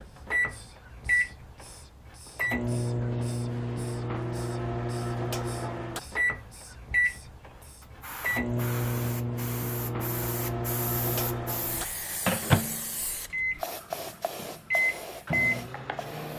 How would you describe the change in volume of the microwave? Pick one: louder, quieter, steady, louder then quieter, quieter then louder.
steady.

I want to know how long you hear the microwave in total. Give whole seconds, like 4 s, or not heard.
16 s.